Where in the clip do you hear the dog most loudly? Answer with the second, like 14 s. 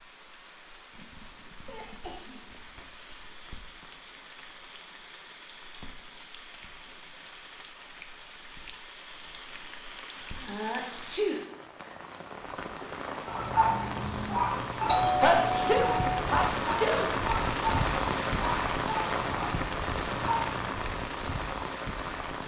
14 s.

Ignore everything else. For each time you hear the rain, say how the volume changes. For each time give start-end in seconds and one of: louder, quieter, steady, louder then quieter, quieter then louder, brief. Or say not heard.
0.0-22.4 louder.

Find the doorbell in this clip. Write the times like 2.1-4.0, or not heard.
14.4-16.3.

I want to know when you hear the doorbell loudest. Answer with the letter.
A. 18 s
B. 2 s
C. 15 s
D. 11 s
C.